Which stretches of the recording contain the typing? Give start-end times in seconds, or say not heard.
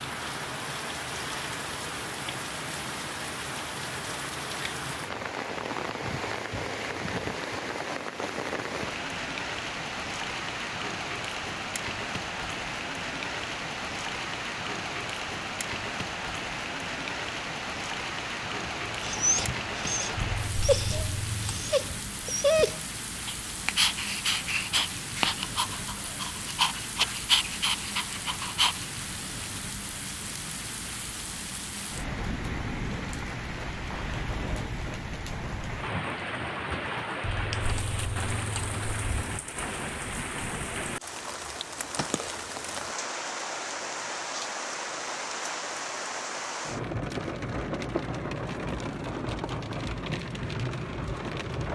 20.1-21.6, 37.2-39.2.